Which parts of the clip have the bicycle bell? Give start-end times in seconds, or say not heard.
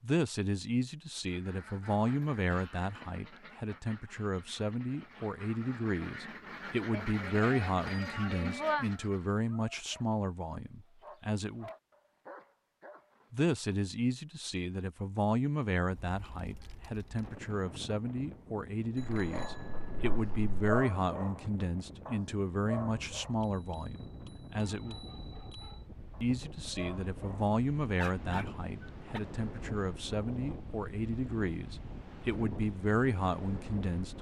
6.9-8.8, 18.9-20.8, 23.4-25.8.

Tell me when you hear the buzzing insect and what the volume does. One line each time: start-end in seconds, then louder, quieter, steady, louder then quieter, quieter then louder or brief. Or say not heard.
not heard.